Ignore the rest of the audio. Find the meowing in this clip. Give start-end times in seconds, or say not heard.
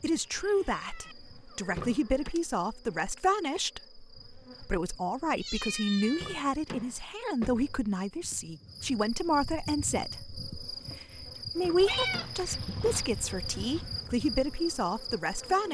0.3-2.4, 5.3-6.5, 11.8-14.1.